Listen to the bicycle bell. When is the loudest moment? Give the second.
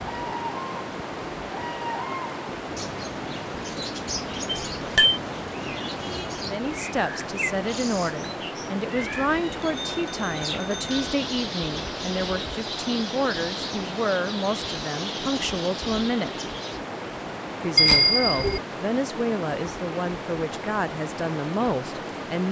18 s.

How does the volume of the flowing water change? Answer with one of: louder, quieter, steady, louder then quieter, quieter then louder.
steady.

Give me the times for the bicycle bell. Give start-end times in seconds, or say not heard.
4.5-5.2, 9.6-11.1, 17.8-18.6.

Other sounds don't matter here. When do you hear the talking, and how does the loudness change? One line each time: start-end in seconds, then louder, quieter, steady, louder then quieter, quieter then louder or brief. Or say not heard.
6.4-16.4 steady
17.6-22.4 steady.